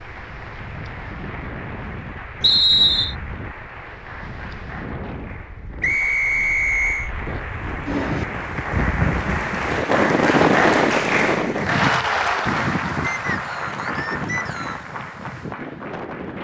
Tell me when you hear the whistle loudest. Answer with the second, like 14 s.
3 s.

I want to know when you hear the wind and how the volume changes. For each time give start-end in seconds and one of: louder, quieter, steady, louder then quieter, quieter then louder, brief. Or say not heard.
0.0-16.3 louder then quieter.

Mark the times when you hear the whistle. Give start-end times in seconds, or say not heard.
2.4-3.1, 5.8-7.1, 13.0-14.8.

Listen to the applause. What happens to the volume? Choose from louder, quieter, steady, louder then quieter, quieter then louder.
louder then quieter.